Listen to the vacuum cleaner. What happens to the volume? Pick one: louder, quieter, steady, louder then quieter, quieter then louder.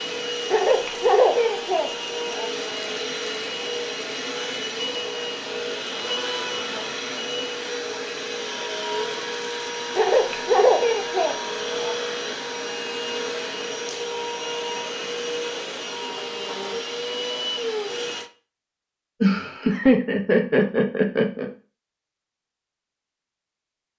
steady.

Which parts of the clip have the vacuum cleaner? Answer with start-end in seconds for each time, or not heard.
0.0-18.3.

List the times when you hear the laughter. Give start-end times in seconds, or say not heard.
0.5-2.5, 9.9-11.9, 19.2-21.5.